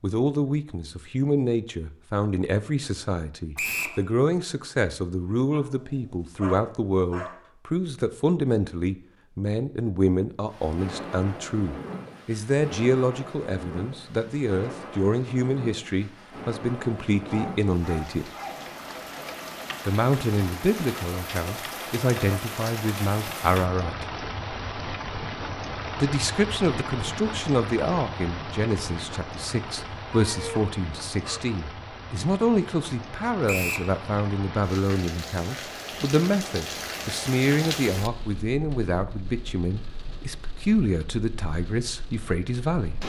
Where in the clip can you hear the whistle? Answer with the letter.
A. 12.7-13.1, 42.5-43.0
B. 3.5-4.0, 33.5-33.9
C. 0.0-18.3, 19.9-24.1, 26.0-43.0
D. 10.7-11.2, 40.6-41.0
B.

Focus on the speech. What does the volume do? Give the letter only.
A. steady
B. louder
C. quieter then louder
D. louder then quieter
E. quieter
A.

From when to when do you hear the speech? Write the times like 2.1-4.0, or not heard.
0.0-18.3, 19.9-24.1, 26.0-43.0.